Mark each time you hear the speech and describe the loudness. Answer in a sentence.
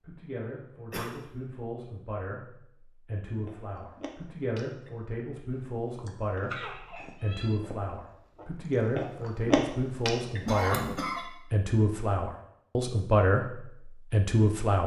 The speech can be heard from 0.0 to 14.8 s, getting louder.